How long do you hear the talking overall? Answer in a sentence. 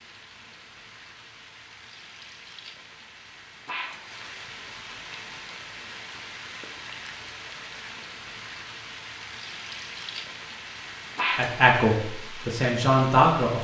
You can hear the talking for 2 seconds altogether.